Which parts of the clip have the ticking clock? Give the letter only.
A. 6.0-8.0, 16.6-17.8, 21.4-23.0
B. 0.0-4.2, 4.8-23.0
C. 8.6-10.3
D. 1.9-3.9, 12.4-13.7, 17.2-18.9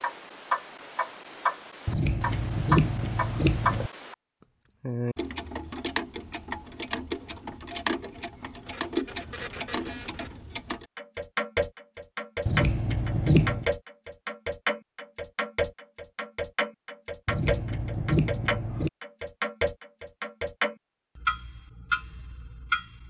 B.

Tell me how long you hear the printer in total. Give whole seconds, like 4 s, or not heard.
2 s.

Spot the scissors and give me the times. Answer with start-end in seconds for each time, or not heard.
1.9-3.9, 12.4-13.7, 17.2-18.9.